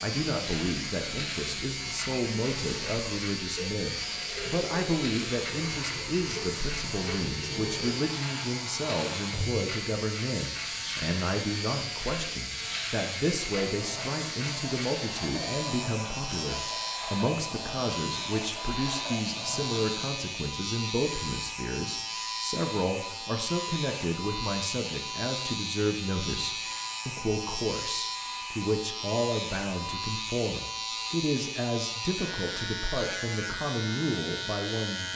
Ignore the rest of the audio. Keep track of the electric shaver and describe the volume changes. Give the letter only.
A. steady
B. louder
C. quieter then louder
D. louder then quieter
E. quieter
A.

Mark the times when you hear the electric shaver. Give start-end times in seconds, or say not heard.
0.0-35.1.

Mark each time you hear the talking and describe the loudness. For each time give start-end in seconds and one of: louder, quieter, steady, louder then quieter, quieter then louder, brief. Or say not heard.
0.0-35.1 steady.